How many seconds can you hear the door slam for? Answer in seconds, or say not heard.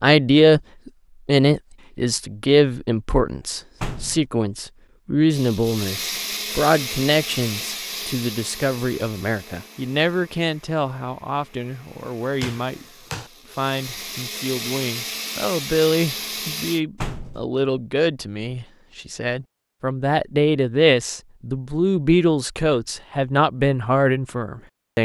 2 s.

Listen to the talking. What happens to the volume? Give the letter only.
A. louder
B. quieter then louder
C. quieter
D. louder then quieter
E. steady
B.